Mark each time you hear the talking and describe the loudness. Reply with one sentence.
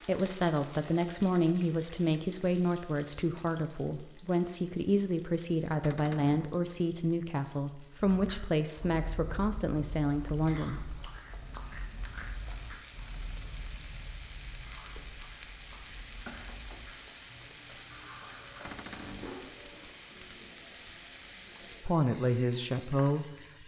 The talking can be heard from 0.1 to 10.8 s, at a steady volume; and briefly from 21.8 to 23.6 s.